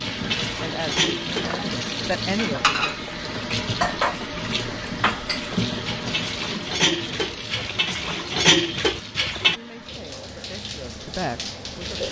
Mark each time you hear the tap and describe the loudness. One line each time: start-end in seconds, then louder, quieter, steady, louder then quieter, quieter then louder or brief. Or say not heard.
0.0-12.0 quieter.